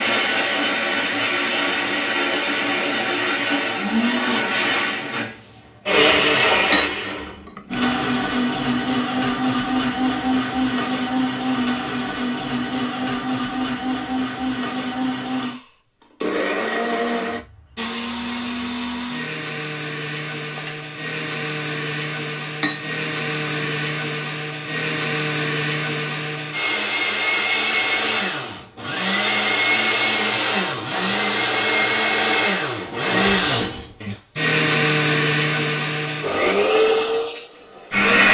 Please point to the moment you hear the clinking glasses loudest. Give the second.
7 s.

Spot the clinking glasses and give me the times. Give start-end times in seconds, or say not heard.
6.7-8.0, 22.6-23.9.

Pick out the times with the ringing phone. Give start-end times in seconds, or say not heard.
20.4-20.8.